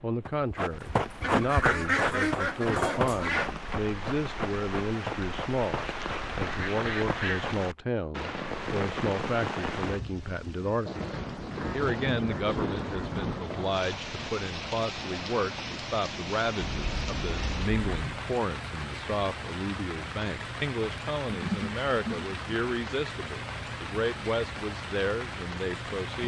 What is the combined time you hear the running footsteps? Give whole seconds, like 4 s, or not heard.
7 s.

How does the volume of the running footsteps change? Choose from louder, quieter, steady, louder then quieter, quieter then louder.
quieter.